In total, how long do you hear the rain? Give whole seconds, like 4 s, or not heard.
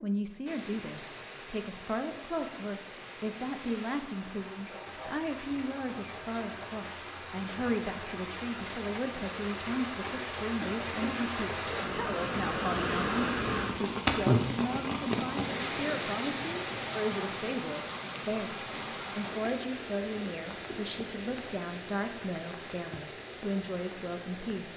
25 s.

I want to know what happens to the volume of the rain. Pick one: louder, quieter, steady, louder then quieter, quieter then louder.
louder then quieter.